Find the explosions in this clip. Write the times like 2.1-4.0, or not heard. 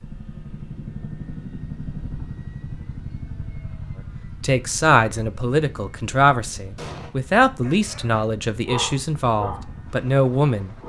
6.8-7.2.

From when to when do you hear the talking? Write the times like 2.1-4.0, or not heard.
4.4-10.8.